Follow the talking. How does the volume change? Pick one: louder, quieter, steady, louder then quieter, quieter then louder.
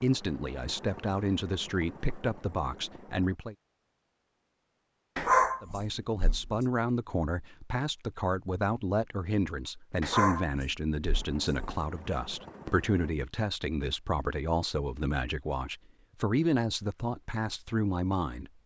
steady.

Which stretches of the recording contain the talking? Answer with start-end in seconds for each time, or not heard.
0.0-3.5, 5.6-18.5.